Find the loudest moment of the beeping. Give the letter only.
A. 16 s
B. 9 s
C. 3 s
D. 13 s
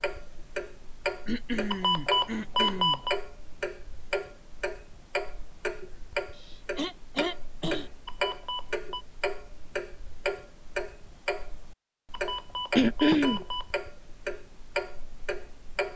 C.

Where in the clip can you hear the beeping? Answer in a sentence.
You can hear the beeping from 1.7 to 3.2 s, from 8.1 to 9.1 s and from 12.1 to 13.7 s.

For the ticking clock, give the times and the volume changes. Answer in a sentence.
The ticking clock can be heard from 0.0 to 15.9 s, at a steady volume.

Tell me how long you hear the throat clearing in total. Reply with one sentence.
You can hear the throat clearing for 4 seconds altogether.